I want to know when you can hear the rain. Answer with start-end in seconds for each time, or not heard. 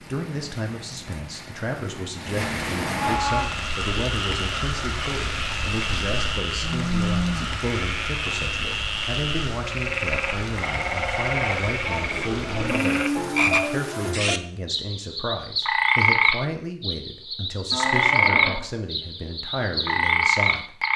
0.0-14.2.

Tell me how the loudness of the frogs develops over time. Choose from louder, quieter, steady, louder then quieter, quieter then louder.
louder.